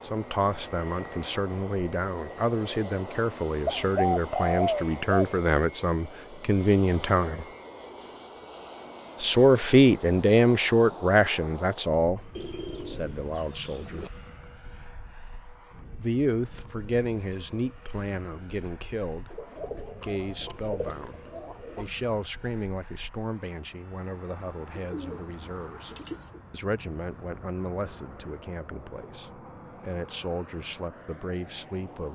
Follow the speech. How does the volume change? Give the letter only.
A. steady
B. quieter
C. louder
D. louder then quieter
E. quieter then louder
D.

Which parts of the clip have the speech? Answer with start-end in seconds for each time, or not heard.
0.0-7.5, 9.2-14.1, 15.9-32.1.